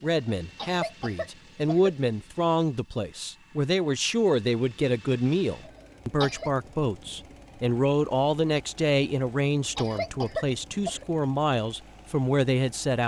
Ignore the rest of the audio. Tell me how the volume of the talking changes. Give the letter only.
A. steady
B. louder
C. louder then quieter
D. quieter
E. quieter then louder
A.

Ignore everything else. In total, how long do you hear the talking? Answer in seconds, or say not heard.
13 s.